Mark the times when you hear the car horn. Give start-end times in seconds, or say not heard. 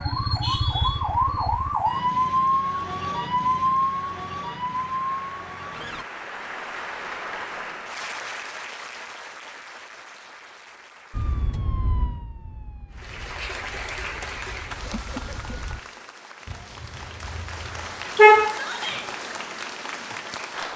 16.5-18.5.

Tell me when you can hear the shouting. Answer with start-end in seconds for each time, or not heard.
18.5-19.1.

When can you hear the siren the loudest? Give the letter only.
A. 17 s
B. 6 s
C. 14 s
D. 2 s
D.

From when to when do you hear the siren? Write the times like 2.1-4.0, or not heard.
0.0-6.0, 11.1-15.8.